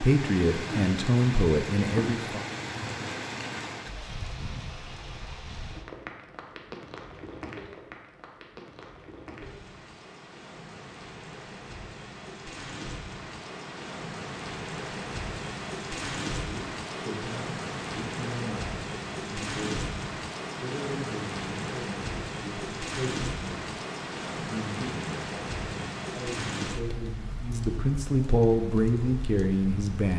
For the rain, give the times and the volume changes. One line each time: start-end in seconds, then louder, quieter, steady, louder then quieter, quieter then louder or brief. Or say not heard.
0.0-30.1 quieter then louder.